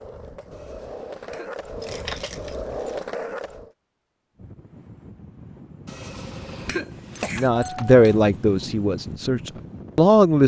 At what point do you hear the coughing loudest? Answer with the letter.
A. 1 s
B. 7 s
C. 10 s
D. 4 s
B.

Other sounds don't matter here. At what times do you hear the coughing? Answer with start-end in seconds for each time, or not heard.
0.5-2.1, 5.8-7.5.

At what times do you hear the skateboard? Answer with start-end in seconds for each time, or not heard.
0.0-3.7.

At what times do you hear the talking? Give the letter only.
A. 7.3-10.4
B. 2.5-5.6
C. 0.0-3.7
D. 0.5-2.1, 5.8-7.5
A.